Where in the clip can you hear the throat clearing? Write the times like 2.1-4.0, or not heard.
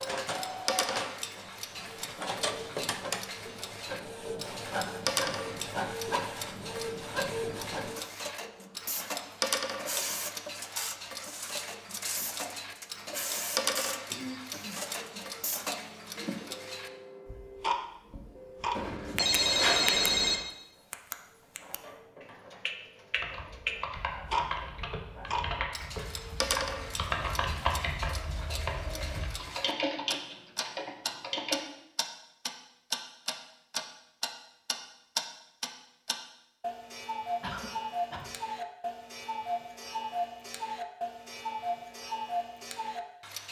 14.1-14.8, 37.4-38.2.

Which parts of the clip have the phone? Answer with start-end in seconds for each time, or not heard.
18.8-20.4.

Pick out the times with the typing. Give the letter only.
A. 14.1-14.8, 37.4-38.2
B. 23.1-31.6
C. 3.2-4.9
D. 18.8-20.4
B.